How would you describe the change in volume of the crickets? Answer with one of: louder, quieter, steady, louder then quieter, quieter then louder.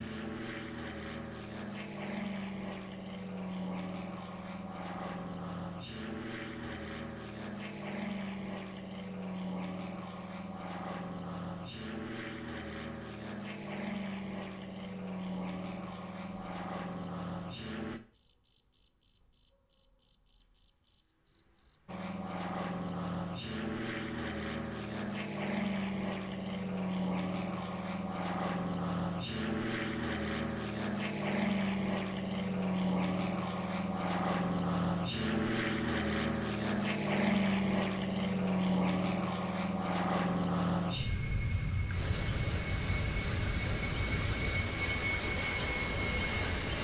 quieter.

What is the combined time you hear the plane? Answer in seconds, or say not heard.
43 s.